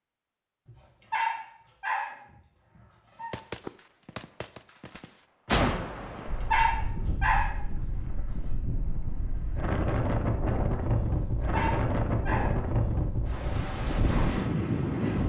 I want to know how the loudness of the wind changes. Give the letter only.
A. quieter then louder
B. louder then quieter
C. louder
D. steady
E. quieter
C.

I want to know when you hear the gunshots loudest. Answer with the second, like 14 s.
6 s.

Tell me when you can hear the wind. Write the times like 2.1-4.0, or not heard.
6.2-15.2.